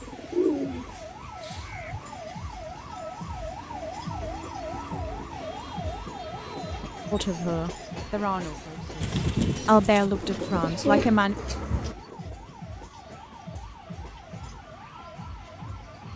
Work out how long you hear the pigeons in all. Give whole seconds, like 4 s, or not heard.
5 s.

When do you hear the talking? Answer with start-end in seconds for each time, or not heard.
7.1-11.3.